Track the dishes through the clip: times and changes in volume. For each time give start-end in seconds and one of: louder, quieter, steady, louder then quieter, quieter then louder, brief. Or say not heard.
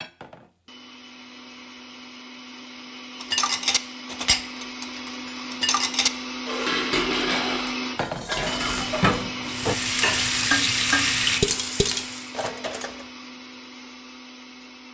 3.2-13.1 steady.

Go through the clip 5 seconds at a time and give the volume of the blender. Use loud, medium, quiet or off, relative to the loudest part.
medium, loud, medium.